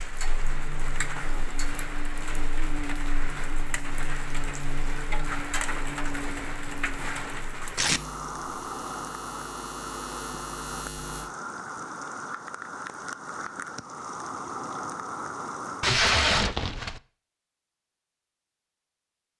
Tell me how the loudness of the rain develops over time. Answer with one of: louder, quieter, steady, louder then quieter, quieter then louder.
steady.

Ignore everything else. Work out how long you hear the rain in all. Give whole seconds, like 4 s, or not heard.
16 s.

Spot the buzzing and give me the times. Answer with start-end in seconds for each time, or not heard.
0.0-11.3.